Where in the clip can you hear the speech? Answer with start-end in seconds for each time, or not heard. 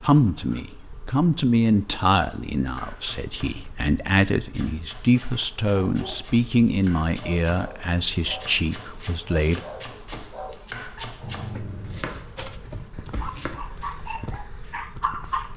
0.0-9.6.